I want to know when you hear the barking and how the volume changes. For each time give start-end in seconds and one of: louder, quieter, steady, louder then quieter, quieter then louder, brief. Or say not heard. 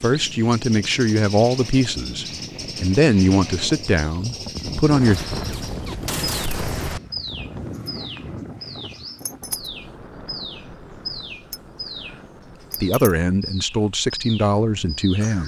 not heard.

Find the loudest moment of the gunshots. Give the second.
6 s.